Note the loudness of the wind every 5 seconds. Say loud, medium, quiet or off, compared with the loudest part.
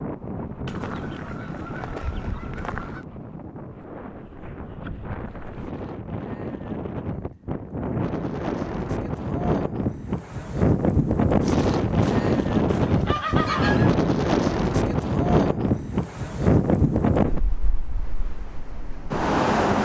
quiet, medium, loud, loud.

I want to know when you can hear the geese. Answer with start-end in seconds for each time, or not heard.
0.7-3.0, 11.4-13.9.